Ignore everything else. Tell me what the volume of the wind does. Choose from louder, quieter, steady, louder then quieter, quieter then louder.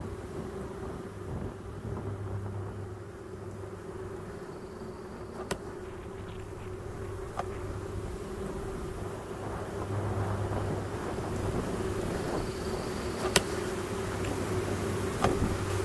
quieter then louder.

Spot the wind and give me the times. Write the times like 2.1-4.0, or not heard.
0.0-15.8.